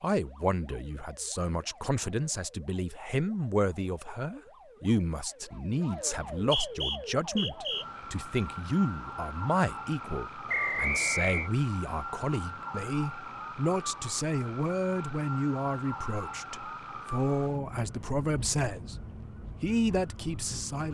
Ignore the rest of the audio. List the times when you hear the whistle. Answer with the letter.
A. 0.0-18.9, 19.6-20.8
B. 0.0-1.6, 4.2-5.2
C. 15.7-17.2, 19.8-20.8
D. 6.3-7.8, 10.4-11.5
D.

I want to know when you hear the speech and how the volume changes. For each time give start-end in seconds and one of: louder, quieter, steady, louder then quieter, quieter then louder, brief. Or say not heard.
0.0-18.9 steady
19.6-20.8 brief.